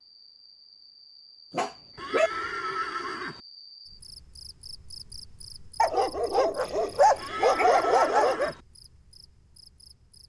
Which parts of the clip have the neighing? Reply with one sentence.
The neighing can be heard from 1.9 to 3.4 s and from 7.2 to 8.6 s.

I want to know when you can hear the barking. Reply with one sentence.
You can hear the barking from 1.5 to 2.3 s and from 5.8 to 8.6 s.